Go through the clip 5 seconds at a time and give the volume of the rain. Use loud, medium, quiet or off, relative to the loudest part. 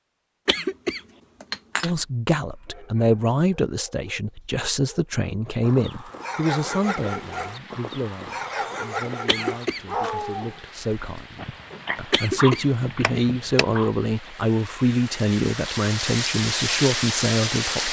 off, quiet, quiet, loud.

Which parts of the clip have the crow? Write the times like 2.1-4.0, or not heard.
not heard.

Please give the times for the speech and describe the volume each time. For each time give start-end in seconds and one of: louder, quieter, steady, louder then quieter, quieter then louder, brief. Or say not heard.
1.8-17.8 quieter then louder.